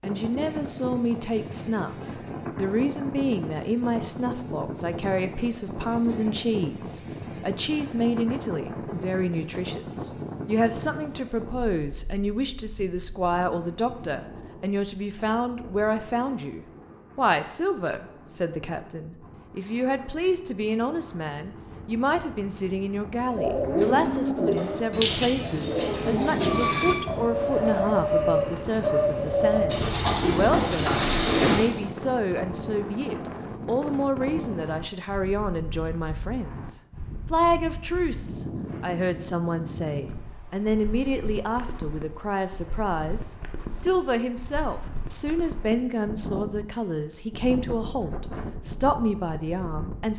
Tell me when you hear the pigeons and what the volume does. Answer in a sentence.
You can hear the pigeons from 23.2 to 31.8 s, at a steady volume.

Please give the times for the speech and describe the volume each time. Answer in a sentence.
You can hear the speech briefly from 0.0 to 1.9 s; and from 2.5 to 50.1 s, at a steady volume.